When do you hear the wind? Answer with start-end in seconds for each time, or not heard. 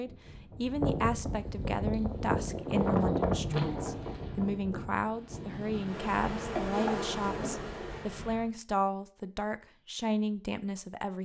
0.0-8.5.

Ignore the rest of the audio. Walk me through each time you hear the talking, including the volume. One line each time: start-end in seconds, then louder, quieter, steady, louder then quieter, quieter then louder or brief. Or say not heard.
0.0-11.2 steady.